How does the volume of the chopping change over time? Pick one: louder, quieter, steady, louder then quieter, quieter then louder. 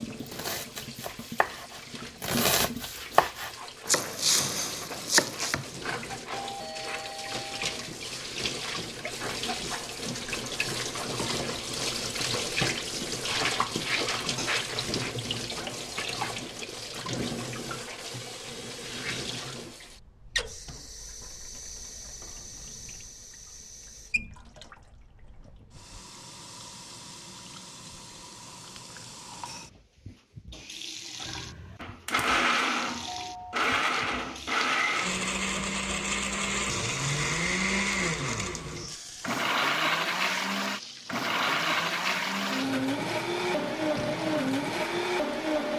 louder.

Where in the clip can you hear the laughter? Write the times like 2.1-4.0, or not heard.
not heard.